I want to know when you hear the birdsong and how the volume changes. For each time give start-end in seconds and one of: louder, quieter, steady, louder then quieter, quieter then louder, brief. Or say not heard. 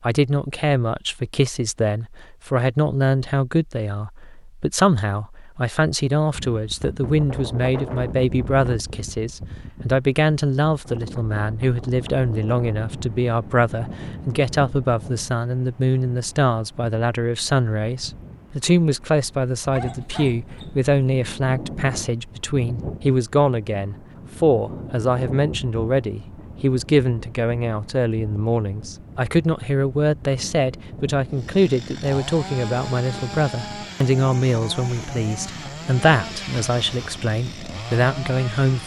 not heard.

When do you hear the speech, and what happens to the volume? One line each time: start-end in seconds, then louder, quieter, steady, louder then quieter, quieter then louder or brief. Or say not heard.
0.0-38.8 steady.